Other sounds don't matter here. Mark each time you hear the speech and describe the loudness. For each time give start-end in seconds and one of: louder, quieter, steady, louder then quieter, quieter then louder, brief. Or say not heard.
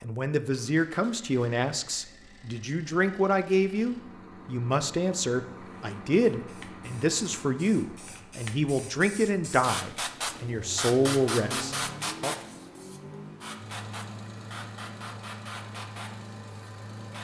0.0-12.3 steady.